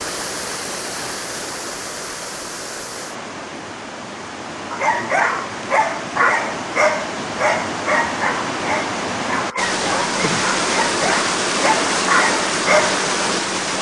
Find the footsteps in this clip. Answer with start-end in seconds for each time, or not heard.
not heard.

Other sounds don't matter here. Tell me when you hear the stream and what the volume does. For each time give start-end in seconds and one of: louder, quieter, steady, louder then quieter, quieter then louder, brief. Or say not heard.
0.0-13.7 louder.